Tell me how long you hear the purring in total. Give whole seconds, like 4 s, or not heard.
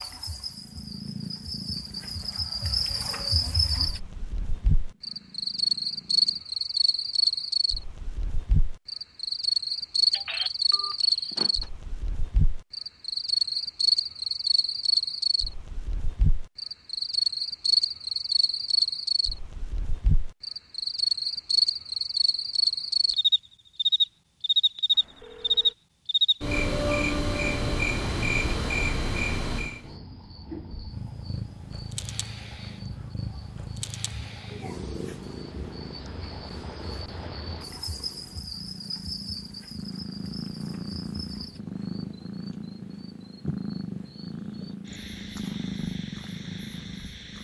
23 s.